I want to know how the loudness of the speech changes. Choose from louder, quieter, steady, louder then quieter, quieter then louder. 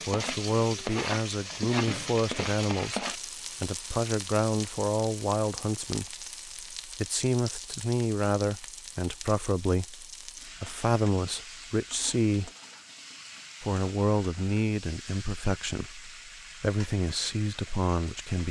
steady.